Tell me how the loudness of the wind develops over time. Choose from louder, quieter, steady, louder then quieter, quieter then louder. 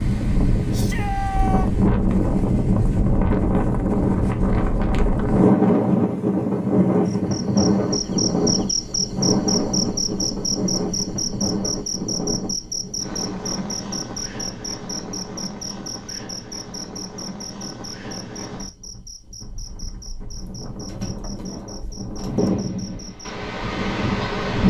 quieter then louder.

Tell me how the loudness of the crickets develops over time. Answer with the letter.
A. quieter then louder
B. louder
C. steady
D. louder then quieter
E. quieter
E.